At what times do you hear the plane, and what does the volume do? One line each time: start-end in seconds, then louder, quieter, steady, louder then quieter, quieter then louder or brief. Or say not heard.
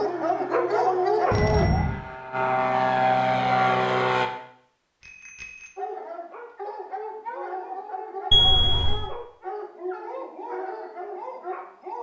0.0-4.3 louder.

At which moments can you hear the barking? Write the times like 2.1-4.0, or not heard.
0.0-1.7, 5.8-11.9.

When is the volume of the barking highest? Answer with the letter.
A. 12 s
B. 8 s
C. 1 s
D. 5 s
C.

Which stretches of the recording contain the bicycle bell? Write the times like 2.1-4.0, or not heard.
1.3-2.0, 5.0-5.8, 8.3-9.1.